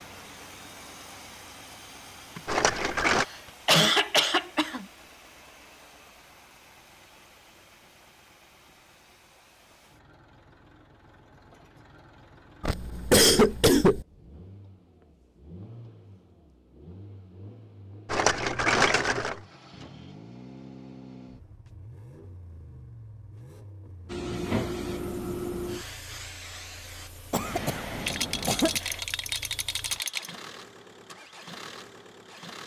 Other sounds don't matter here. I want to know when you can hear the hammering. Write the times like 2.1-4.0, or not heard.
not heard.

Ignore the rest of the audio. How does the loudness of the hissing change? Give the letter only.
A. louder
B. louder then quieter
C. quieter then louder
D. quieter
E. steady
D.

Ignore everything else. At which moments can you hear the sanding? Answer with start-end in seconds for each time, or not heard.
not heard.